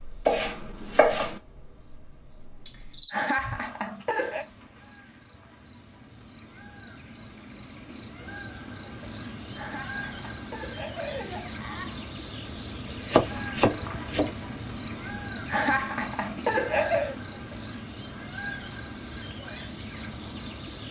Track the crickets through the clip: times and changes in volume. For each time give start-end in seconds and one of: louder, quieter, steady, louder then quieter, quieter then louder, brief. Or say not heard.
0.0-20.8 louder.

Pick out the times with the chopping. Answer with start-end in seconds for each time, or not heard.
0.2-1.4, 13.1-14.3.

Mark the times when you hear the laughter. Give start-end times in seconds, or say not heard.
3.1-4.5, 9.6-12.0, 15.4-17.1.